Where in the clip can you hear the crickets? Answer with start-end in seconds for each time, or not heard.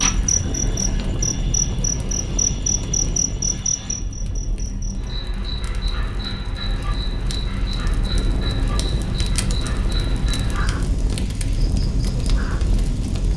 0.0-13.3.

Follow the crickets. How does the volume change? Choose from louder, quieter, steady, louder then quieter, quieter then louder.
quieter.